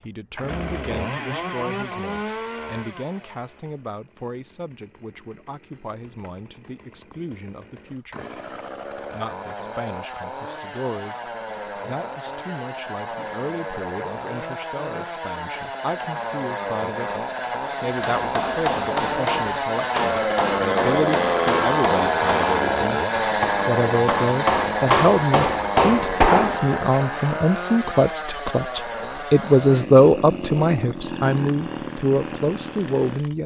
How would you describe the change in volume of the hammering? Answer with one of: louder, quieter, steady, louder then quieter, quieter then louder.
louder.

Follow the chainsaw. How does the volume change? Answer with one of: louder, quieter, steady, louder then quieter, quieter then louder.
louder then quieter.